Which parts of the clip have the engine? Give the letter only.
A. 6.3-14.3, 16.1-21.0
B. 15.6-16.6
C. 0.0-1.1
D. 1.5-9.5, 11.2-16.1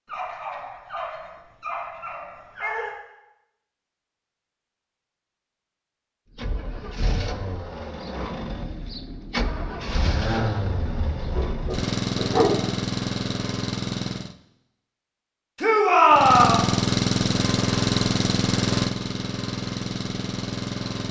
A.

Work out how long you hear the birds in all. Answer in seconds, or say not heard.
not heard.